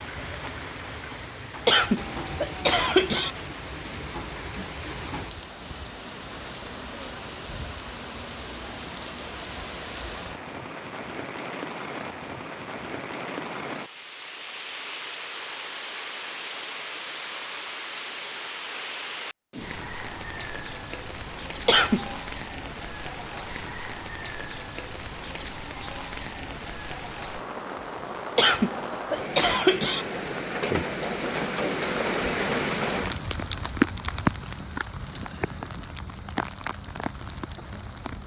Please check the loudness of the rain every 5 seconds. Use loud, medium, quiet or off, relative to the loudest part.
medium, medium, medium, medium, medium, medium, loud, medium.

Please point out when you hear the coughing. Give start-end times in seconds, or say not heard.
1.6-3.3, 21.6-22.1, 28.4-30.1.